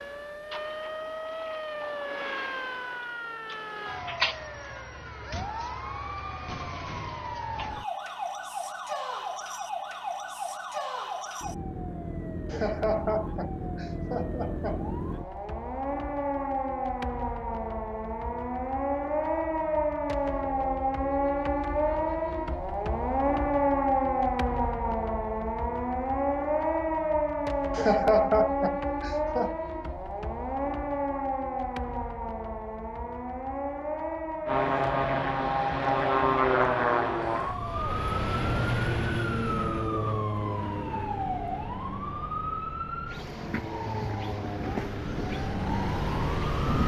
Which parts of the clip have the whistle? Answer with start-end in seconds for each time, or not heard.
not heard.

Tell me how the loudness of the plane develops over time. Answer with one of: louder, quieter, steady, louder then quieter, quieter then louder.
quieter then louder.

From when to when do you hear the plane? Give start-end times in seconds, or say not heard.
34.5-46.8.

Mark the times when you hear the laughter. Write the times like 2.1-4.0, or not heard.
12.5-14.9, 27.7-29.6.